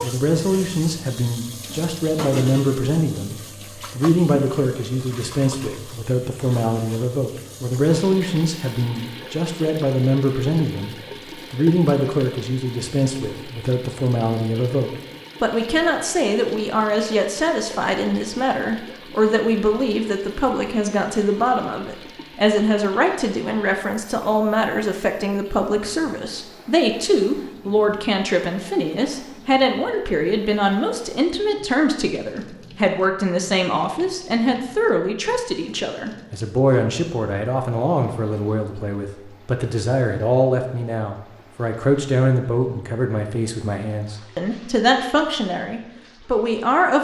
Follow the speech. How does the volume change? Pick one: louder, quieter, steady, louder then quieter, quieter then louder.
steady.